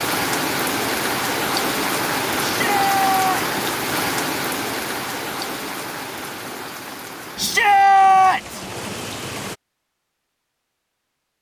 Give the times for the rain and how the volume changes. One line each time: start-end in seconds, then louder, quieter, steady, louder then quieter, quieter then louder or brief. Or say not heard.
0.0-9.6 quieter.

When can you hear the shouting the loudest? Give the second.
8 s.